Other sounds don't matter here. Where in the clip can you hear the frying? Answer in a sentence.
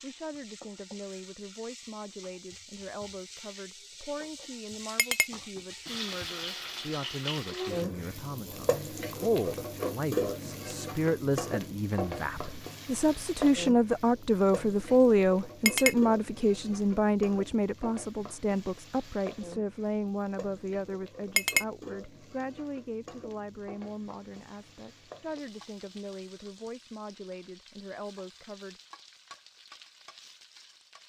You can hear the frying from 0.0 to 31.0 s.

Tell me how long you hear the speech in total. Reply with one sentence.
You can hear the speech for 29 seconds altogether.